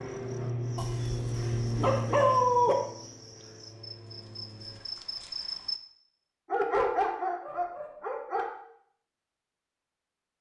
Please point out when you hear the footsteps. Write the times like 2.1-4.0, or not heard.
not heard.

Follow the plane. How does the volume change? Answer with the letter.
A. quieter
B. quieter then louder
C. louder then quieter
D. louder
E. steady
A.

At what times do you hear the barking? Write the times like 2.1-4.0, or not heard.
0.8-2.8, 6.5-8.5.